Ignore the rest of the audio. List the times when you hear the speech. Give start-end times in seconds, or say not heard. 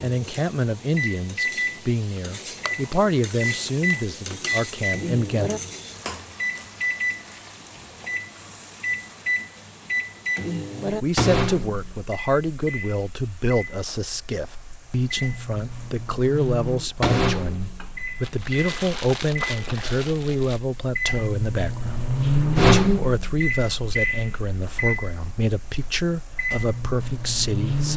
0.0-5.5, 11.0-27.9.